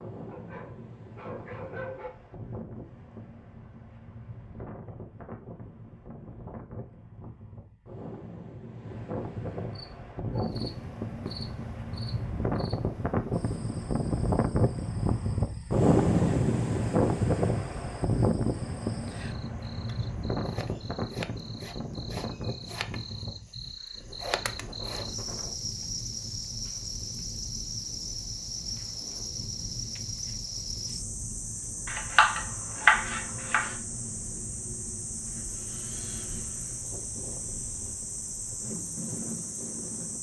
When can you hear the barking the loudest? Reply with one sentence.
The volume of the barking peaks at 2 seconds.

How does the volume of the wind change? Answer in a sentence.
The volume of the wind goes up, then down.